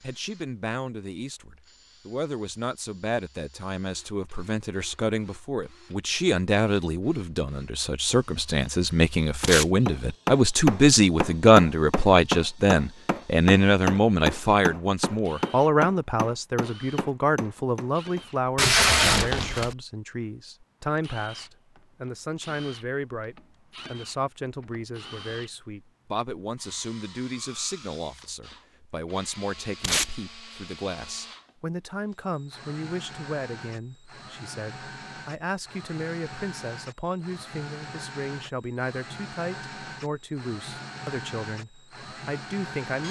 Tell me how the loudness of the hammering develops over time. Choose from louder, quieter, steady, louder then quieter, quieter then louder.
quieter.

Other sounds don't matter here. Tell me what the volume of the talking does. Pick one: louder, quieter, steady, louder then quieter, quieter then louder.
louder then quieter.